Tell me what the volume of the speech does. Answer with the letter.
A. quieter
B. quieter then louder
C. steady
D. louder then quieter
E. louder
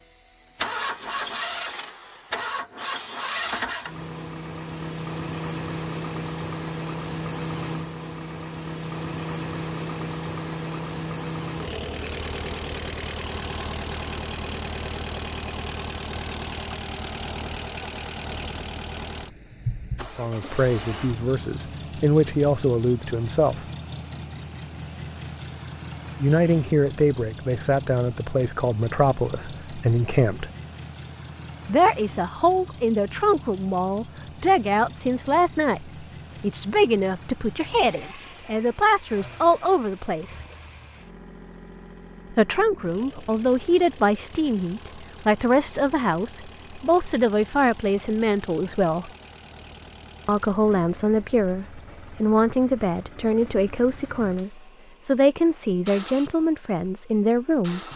C.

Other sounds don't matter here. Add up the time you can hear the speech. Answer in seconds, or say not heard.
31 s.